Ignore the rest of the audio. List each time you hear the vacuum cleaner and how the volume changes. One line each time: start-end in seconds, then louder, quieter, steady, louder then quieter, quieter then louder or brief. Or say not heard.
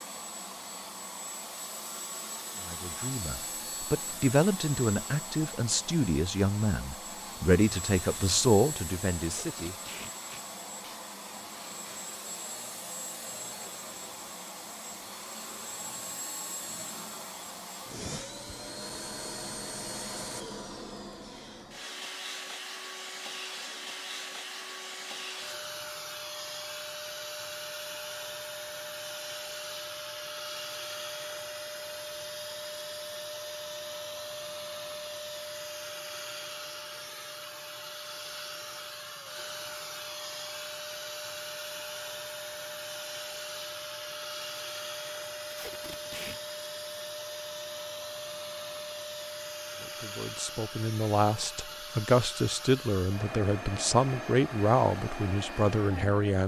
0.0-56.4 steady.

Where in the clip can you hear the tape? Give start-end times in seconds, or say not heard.
9.2-11.0, 45.5-46.4.